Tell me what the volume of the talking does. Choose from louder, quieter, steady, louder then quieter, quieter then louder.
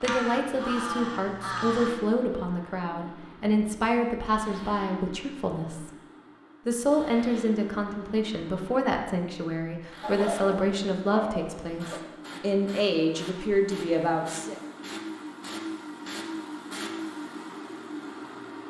steady.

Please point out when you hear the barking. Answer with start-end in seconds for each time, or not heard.
10.0-11.9.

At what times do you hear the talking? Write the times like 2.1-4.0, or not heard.
0.0-5.9, 6.7-14.6.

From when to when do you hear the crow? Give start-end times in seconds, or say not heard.
0.0-1.9.